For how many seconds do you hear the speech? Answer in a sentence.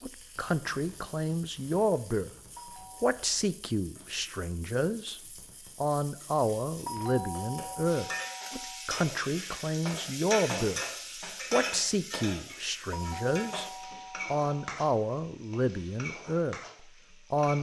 The speech can be heard for 15 seconds in total.